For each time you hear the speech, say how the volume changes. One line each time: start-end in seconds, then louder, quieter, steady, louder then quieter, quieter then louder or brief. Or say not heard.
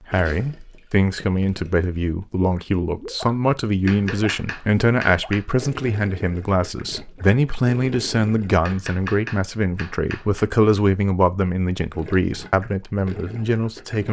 0.1-14.0 steady.